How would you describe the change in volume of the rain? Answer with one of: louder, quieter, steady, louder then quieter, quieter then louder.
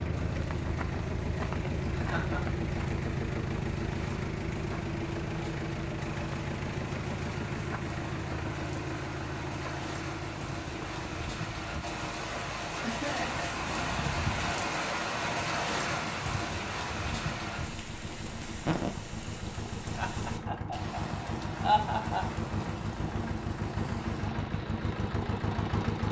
louder then quieter.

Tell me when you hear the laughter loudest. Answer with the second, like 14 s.
22 s.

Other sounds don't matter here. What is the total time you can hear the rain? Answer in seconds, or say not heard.
26 s.